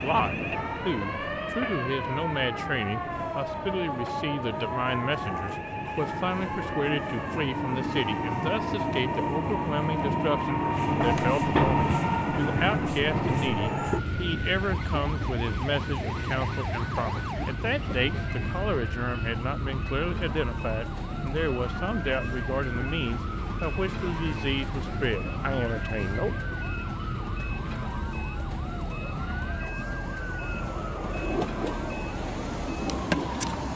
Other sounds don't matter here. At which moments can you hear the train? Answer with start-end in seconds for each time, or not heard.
0.0-33.7.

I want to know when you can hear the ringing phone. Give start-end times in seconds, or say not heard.
not heard.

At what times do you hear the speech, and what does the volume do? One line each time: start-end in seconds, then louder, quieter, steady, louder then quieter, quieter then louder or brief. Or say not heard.
0.0-26.4 steady.